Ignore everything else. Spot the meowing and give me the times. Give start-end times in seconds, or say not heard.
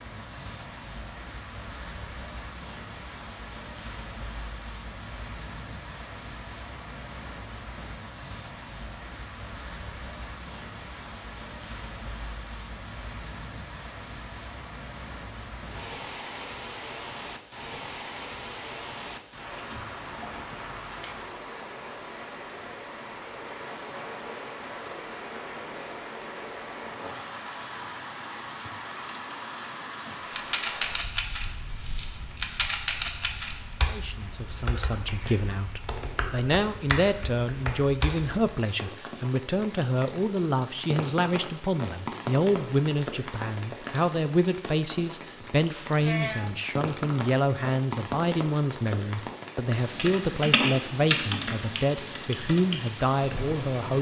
46.0-46.6.